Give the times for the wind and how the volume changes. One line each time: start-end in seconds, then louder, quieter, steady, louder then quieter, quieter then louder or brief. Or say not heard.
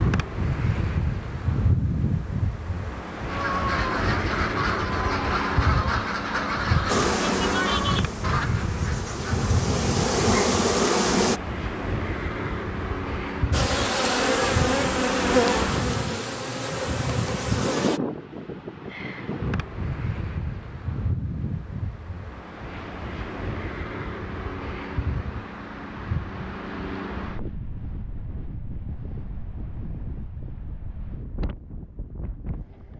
0.0-32.9 quieter.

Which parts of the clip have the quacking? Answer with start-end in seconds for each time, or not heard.
3.2-9.4.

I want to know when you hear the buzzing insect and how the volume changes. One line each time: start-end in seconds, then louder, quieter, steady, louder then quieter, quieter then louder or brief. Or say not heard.
6.8-11.4 quieter then louder
13.5-18.0 quieter.